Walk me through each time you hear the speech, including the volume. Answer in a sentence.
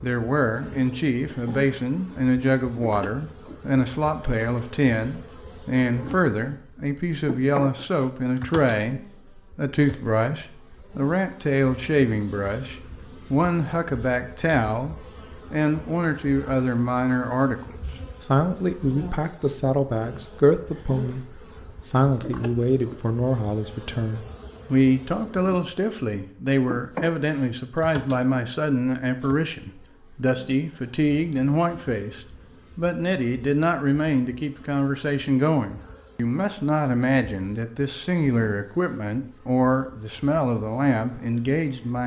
The speech can be heard from 0.0 to 42.0 s, at a steady volume.